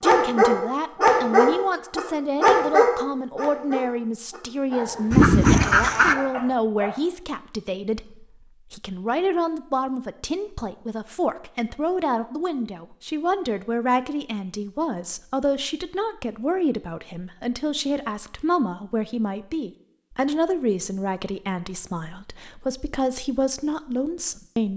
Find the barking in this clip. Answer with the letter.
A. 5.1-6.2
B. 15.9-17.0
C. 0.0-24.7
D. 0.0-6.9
D.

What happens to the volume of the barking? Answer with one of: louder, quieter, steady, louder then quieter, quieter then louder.
quieter.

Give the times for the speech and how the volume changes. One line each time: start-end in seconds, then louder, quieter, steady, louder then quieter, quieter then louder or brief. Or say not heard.
0.0-24.7 steady.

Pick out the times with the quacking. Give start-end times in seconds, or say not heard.
5.1-6.2.